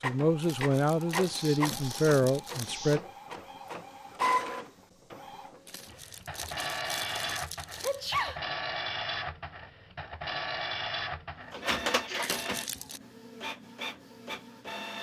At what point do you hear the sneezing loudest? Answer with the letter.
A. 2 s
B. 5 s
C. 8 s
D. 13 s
C.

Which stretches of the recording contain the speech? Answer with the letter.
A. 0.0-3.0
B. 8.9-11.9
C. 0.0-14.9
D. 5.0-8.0
A.